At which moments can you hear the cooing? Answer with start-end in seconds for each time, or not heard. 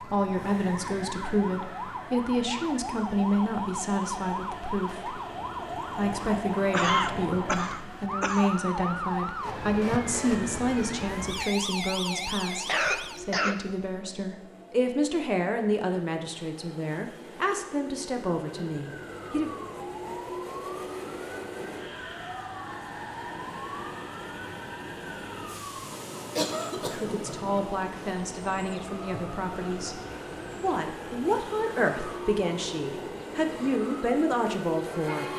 not heard.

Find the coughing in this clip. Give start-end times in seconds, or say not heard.
6.7-8.6, 12.7-13.8, 26.4-27.2.